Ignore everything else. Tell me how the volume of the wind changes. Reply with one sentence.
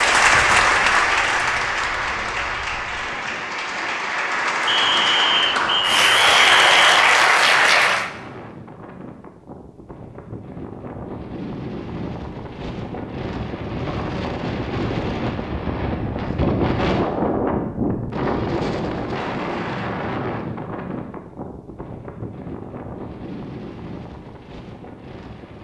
The volume of the wind goes up, then down.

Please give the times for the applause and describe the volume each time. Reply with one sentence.
You can hear the applause from 0.0 to 8.1 s, getting quieter then louder.